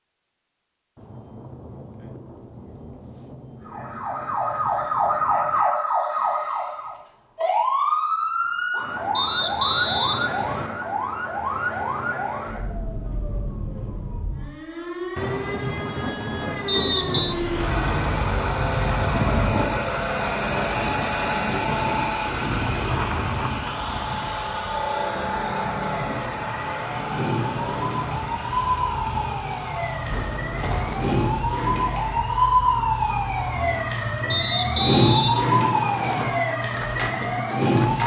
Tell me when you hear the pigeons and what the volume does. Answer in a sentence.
You can't hear the pigeons here.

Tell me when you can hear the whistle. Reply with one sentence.
The whistle can be heard from 9.2 to 10.7 s, from 16.6 to 17.4 s and from 34.3 to 36.3 s.